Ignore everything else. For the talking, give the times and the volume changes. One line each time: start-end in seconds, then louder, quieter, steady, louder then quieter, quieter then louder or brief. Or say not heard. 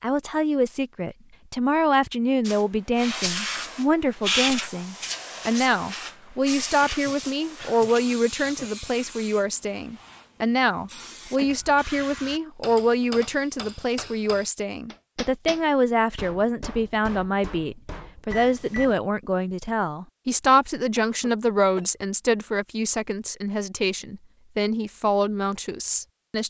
0.0-26.4 steady.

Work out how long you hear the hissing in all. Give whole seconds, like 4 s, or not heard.
10 s.